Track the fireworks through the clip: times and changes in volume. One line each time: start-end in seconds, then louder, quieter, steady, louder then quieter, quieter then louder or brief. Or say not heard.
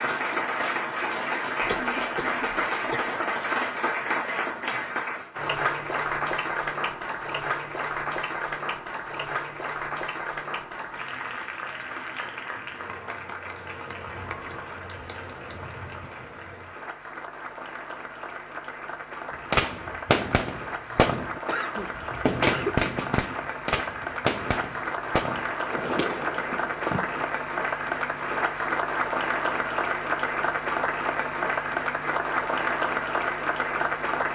19.5-27.2 quieter.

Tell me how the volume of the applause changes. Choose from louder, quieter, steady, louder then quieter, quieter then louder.
quieter then louder.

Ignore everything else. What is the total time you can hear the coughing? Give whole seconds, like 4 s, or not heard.
3 s.